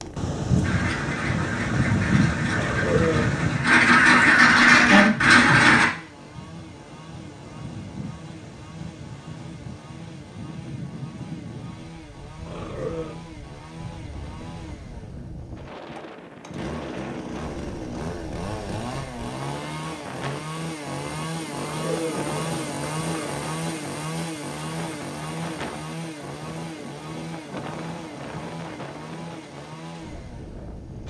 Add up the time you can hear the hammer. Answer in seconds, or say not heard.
not heard.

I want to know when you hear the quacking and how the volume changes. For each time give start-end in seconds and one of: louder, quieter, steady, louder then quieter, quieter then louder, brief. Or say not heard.
0.6-5.8 louder.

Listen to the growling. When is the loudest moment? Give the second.
3 s.